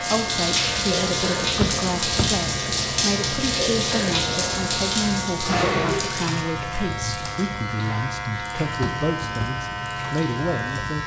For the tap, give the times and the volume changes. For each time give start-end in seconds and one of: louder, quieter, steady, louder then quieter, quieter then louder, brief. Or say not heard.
0.0-11.0 quieter.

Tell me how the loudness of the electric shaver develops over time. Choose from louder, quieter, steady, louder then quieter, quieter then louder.
steady.